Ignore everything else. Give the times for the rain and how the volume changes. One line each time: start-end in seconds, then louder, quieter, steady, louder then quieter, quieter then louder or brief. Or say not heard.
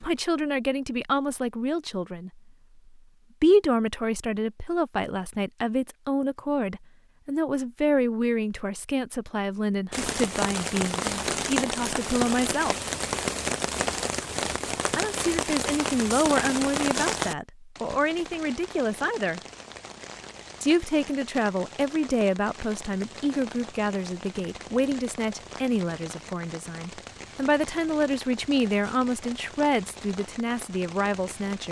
9.9-31.6 quieter.